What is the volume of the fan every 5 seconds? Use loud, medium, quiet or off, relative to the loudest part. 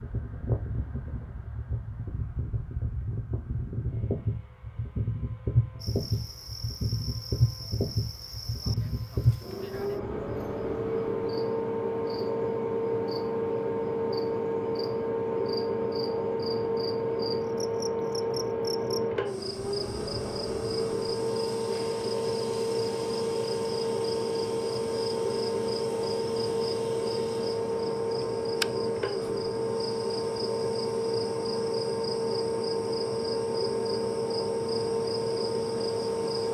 medium, loud, loud, loud, loud, loud, loud, loud.